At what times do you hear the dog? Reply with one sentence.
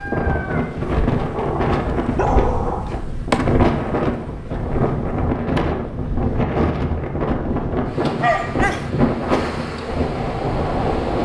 You can hear the dog from 1.3 to 3.0 s and from 8.2 to 8.9 s.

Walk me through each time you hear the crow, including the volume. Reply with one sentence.
The crow can't be heard in this clip.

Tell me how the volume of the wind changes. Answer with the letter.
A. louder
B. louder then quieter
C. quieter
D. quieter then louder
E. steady
E.